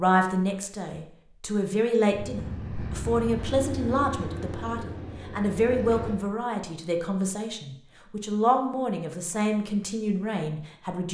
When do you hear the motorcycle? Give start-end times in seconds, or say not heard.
2.0-6.2.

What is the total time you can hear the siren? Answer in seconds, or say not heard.
not heard.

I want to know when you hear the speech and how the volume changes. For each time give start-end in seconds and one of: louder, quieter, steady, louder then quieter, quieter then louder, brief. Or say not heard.
0.0-11.1 steady.